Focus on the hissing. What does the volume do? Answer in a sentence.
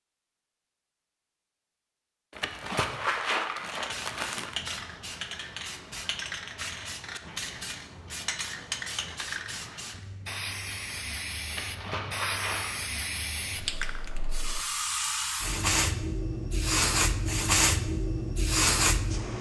The loudness of the hissing goes up.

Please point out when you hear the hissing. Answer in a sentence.
The hissing can be heard from 3.7 to 19.3 s.